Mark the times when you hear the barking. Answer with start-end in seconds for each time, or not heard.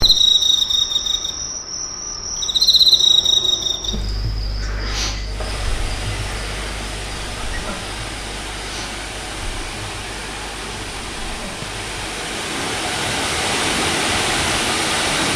not heard.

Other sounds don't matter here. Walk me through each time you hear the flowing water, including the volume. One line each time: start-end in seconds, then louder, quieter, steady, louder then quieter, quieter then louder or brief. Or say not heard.
5.2-15.3 louder.